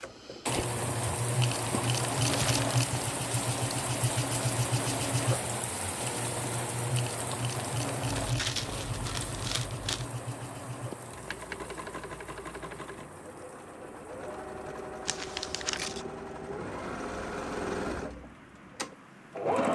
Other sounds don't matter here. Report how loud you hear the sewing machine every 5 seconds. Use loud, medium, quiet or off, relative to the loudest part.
loud, loud, medium, loud.